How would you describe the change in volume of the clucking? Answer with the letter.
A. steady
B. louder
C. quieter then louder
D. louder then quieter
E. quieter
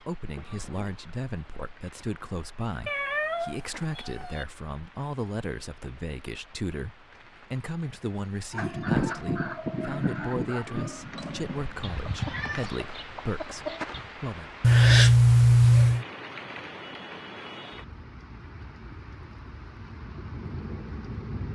E.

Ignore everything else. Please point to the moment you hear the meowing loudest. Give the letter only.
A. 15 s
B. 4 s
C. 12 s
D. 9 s
A.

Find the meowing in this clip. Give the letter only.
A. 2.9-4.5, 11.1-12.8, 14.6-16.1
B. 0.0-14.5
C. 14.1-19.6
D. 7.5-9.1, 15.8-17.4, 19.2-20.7
A.